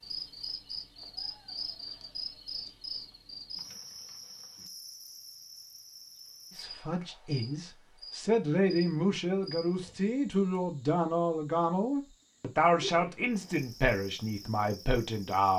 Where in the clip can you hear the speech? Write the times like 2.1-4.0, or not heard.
6.5-15.5.